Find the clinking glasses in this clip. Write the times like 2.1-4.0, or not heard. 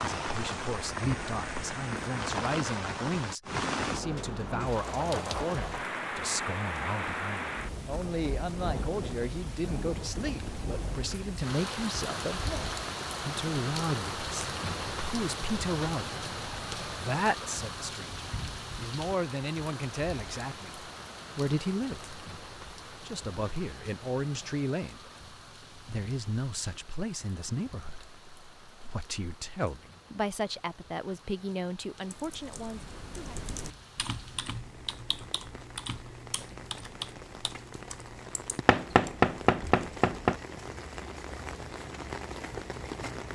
not heard.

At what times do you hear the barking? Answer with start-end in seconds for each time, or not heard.
not heard.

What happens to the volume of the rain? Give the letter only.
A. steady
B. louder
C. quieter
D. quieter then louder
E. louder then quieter
D.